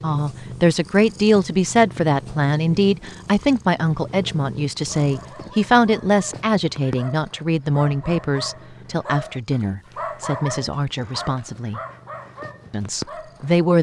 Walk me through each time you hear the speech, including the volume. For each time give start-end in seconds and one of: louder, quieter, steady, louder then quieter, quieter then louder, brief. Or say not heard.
0.0-11.8 quieter
12.7-13.7 brief.